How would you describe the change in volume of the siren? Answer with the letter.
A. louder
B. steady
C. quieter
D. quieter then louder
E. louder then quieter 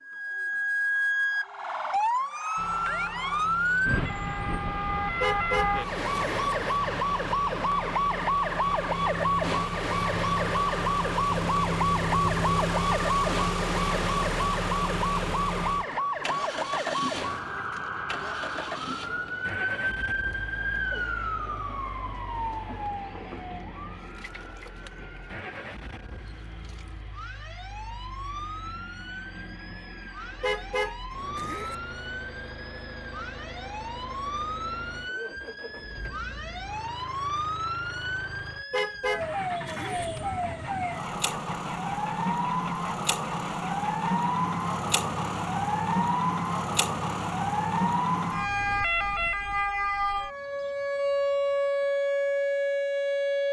D.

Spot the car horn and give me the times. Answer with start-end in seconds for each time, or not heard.
5.2-6.5, 30.4-31.8, 38.7-40.0.